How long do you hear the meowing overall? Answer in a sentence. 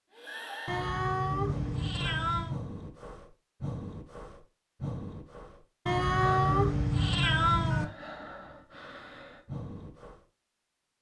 The meowing can be heard for 4 seconds in total.